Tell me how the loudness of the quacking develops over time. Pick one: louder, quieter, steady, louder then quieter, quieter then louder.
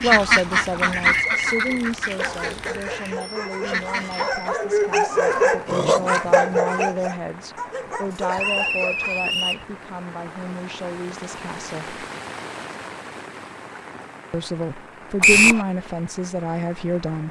quieter then louder.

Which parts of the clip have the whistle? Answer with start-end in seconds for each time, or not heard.
1.0-2.5, 8.3-9.7, 15.2-15.7.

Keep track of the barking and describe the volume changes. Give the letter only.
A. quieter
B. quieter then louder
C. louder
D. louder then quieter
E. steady
D.